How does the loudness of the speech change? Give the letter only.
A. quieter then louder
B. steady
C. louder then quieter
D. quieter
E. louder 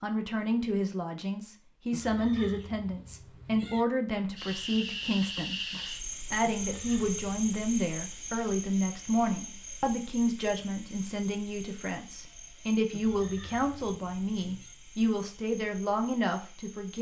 B.